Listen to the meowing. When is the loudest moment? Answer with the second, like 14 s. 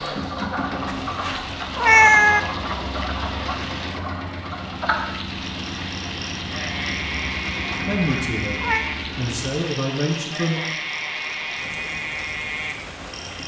2 s.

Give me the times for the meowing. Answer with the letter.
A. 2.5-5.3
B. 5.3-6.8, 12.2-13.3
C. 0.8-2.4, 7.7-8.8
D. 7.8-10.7
C.